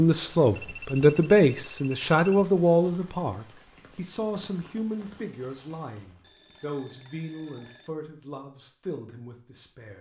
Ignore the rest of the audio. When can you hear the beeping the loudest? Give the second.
7 s.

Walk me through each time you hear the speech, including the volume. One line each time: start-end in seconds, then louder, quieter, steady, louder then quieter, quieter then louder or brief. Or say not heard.
0.0-9.9 quieter.